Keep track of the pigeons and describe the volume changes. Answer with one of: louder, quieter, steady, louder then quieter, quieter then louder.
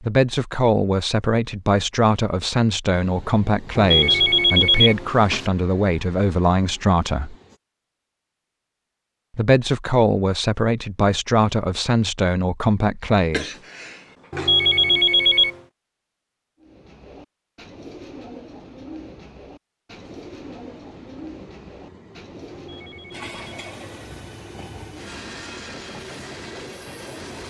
steady.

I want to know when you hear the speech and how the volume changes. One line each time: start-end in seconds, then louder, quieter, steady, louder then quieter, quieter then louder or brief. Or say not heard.
0.0-7.3 steady
9.3-13.6 steady.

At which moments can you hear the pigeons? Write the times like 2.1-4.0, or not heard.
16.6-23.0.